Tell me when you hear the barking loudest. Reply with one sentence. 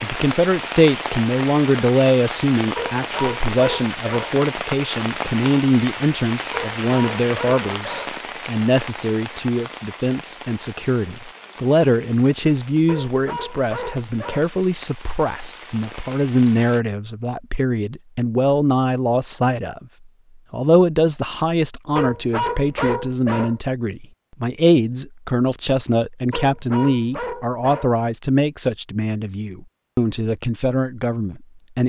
The volume of the barking peaks at 23 seconds.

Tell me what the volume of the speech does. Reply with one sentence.
The loudness of the speech stays about the same.